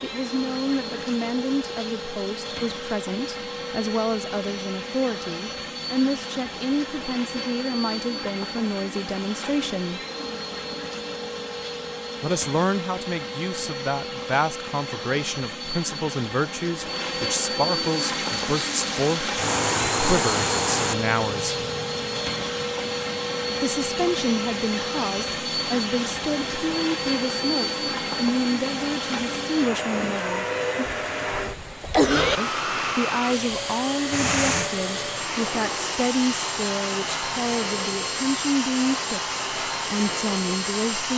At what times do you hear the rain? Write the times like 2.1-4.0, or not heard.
17.9-41.1.